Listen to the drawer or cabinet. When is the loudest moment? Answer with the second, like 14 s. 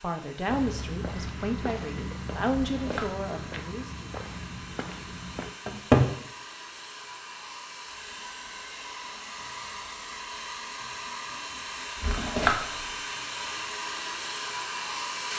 6 s.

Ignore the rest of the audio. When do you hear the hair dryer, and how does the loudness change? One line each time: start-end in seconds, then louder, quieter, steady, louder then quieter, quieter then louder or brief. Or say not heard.
0.0-15.3 louder.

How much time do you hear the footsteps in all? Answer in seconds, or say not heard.
5 s.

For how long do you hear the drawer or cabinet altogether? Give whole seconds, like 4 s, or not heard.
2 s.